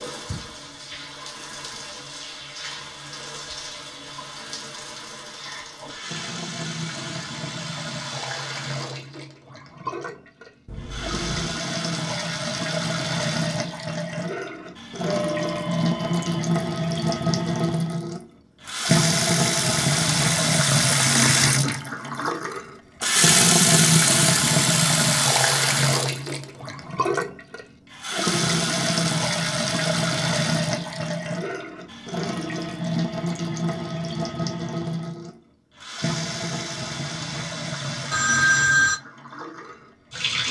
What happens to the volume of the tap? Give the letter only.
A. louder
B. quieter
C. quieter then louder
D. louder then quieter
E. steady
D.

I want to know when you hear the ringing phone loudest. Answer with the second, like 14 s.
39 s.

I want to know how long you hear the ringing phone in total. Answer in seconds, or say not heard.
3 s.